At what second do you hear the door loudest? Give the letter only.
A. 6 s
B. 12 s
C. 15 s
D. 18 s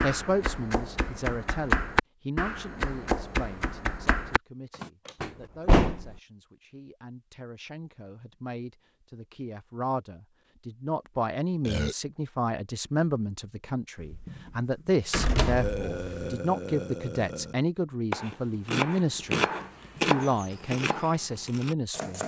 A.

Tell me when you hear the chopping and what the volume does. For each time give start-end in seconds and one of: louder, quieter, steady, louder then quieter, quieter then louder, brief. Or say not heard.
0.0-4.9 louder then quieter
18.1-22.2 quieter.